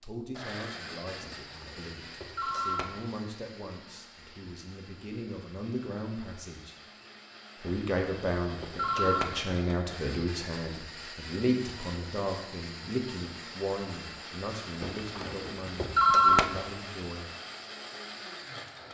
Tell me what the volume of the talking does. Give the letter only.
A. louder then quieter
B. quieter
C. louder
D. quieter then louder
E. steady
A.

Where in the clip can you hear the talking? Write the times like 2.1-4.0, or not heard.
0.0-6.8, 7.6-17.3.